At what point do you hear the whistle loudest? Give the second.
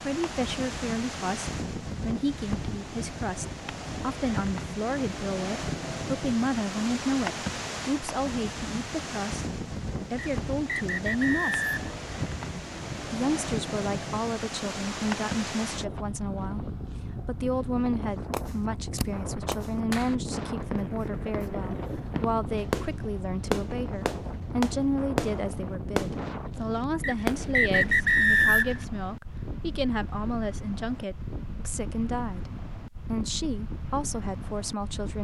28 s.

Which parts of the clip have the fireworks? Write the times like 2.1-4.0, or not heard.
18.3-28.4.